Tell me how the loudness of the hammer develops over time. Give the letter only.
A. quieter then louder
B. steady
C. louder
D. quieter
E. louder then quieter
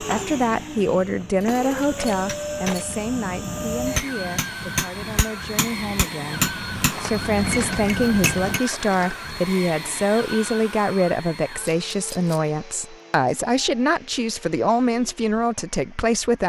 C.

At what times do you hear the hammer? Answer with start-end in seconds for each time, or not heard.
0.0-8.6.